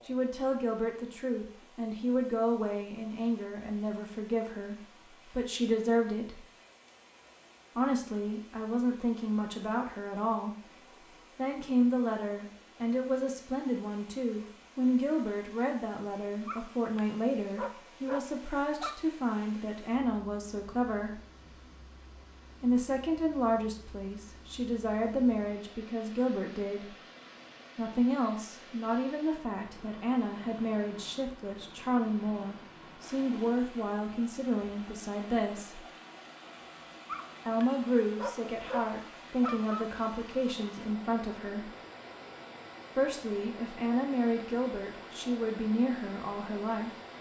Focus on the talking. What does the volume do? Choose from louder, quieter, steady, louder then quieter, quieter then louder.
steady.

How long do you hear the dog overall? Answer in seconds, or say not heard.
5 s.